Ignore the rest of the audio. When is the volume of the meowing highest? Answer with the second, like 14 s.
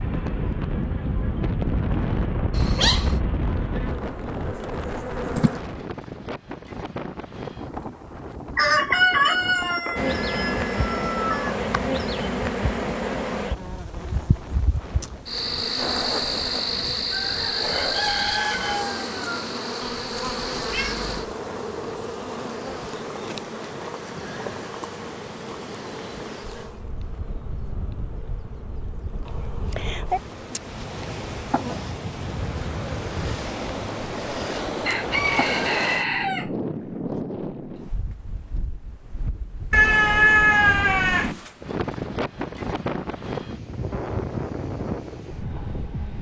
40 s.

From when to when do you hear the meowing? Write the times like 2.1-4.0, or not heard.
2.5-3.2, 19.8-21.1, 39.7-41.4.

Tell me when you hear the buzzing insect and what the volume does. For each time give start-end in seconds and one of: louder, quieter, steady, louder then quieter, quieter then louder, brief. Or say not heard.
0.0-5.6 louder
9.9-35.6 quieter.